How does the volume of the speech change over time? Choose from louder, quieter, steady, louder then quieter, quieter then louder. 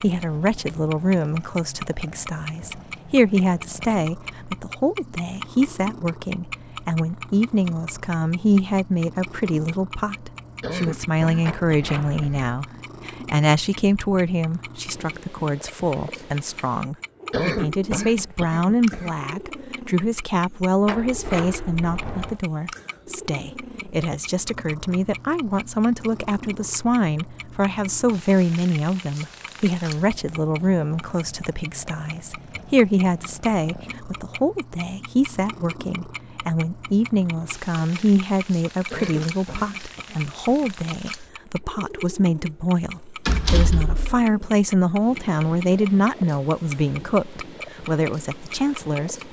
steady.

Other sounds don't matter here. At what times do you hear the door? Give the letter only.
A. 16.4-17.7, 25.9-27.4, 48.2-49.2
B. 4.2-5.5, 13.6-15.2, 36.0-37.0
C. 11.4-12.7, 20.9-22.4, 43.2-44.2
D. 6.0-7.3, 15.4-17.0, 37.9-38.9
C.